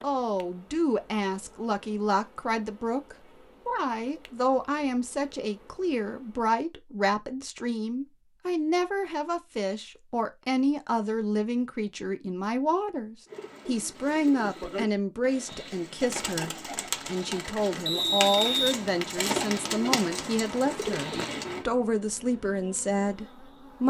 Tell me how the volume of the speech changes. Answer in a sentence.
The loudness of the speech stays about the same.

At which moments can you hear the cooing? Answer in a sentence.
You can hear the cooing from 13.2 to 21.6 s.